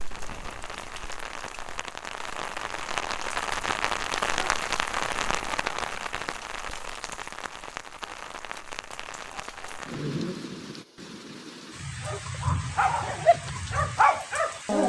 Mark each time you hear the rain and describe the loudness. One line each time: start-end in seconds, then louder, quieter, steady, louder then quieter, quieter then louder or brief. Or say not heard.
0.0-14.8 louder then quieter.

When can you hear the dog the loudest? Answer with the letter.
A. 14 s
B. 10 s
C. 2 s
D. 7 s
A.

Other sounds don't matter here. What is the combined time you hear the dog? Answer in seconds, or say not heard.
3 s.